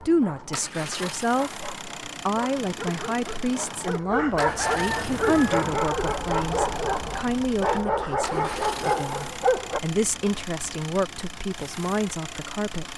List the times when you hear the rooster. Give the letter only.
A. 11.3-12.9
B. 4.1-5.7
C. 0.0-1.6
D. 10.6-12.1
B.